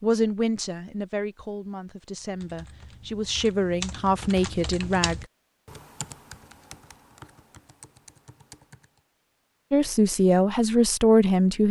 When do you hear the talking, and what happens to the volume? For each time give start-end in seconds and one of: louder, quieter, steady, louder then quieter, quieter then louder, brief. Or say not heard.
0.0-5.2 quieter then louder
9.7-11.6 brief.